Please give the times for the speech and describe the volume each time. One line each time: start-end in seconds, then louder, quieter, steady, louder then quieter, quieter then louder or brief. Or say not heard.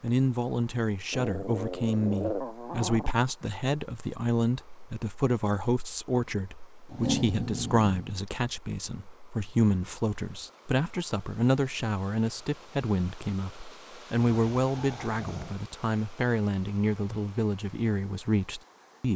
0.0-19.1 steady.